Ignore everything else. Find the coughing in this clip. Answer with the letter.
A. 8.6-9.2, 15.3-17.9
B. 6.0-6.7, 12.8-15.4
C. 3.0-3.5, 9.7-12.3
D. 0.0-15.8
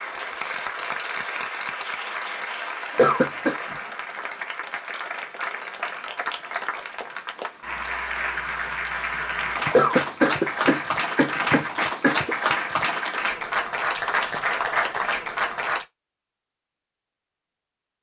C.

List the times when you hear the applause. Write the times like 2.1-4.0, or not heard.
0.0-15.8.